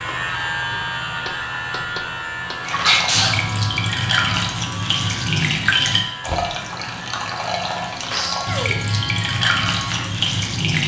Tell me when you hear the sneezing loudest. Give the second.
3 s.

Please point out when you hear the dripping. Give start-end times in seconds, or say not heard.
2.6-10.8.